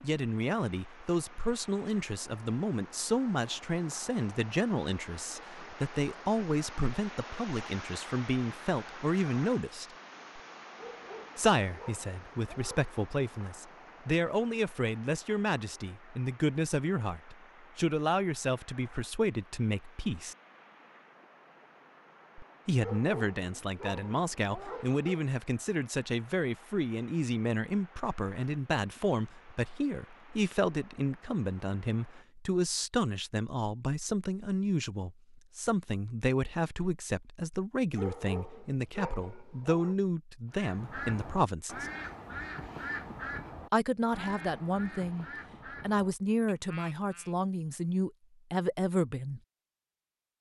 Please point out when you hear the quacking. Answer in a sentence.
You can hear the quacking from 40.5 to 47.4 s.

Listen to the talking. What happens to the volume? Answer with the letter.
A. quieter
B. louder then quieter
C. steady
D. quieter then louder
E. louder
C.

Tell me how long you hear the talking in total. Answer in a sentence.
You can hear the talking for 44 seconds altogether.